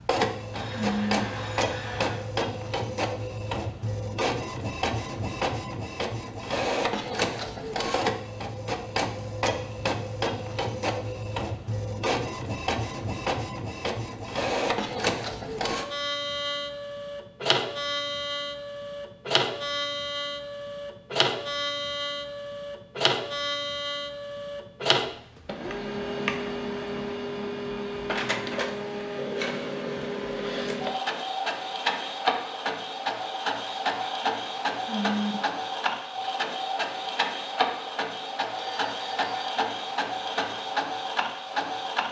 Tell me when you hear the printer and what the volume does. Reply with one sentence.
You can hear the printer from 0.0 to 42.0 s, at a steady volume.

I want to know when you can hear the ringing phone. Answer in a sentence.
The ringing phone can be heard from 0.5 to 2.2 s and from 38.5 to 39.4 s.